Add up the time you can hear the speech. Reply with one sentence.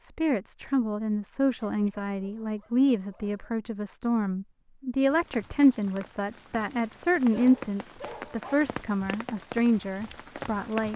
You can hear the speech for 11 seconds altogether.